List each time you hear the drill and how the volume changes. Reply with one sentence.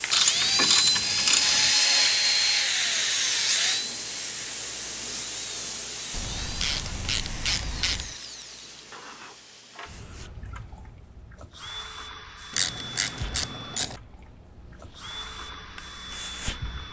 The drill can be heard from 0.0 to 16.8 s, getting quieter.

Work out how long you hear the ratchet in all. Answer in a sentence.
The ratchet can be heard for 5 seconds in total.